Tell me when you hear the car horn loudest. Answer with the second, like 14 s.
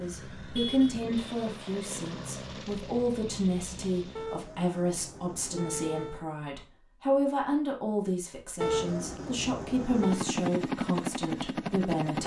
9 s.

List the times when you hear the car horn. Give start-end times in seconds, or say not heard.
0.3-0.9, 4.2-6.2, 8.6-10.2.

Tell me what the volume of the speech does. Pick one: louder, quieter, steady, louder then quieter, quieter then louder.
steady.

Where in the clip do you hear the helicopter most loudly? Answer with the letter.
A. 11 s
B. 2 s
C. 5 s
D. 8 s
A.